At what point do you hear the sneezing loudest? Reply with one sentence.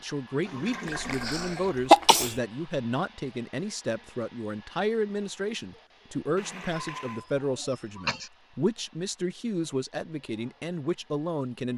The volume of the sneezing peaks at 2 seconds.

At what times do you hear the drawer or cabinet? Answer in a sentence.
The drawer or cabinet can't be heard in this clip.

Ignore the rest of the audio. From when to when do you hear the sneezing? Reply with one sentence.
You can hear the sneezing from 0.8 to 2.4 s and from 6.7 to 8.3 s.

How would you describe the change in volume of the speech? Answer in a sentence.
The loudness of the speech stays about the same.